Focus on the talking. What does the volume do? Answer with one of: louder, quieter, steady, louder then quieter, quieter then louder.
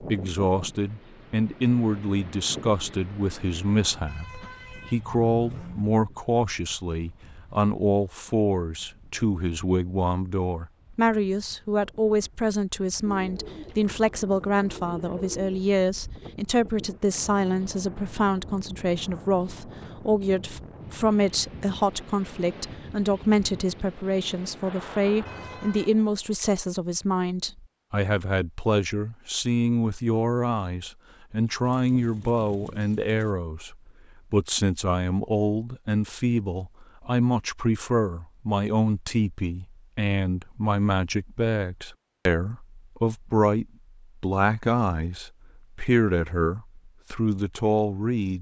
steady.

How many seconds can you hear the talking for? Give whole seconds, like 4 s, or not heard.
48 s.